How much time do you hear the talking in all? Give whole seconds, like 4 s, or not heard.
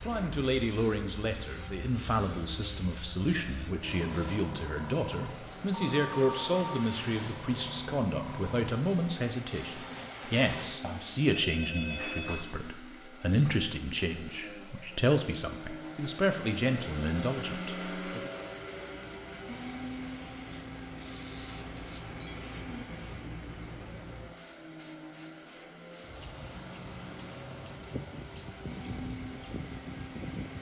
18 s.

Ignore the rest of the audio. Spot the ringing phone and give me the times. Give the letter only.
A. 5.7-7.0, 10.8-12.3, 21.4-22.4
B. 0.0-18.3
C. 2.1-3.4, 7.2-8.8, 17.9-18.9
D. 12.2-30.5
A.